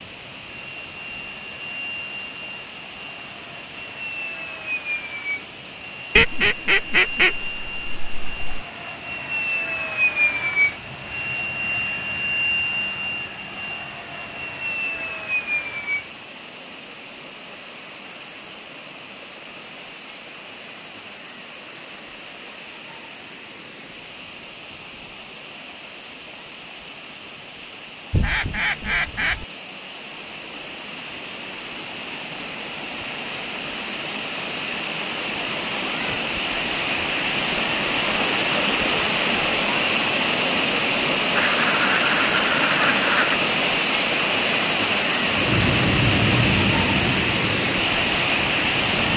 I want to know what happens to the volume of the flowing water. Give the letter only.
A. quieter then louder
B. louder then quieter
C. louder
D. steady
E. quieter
C.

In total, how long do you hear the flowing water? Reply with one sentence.
The flowing water can be heard for 49 seconds in total.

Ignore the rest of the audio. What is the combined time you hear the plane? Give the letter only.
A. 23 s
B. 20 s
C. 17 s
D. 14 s
B.